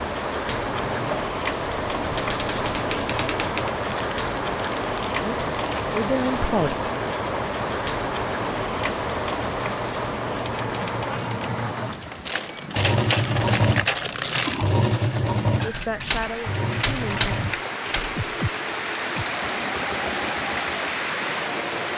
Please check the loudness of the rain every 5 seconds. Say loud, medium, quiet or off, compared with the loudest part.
loud, loud, medium, loud, loud.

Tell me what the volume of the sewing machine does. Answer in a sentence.
The volume of the sewing machine goes up, then down.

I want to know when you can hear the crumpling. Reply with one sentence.
The crumpling can be heard from 3.8 to 5.8 s and from 12.2 to 14.8 s.